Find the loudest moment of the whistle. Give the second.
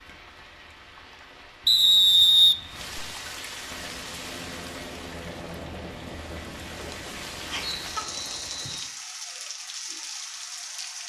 2 s.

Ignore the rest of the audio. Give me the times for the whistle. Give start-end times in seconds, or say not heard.
1.6-3.0, 7.6-8.9.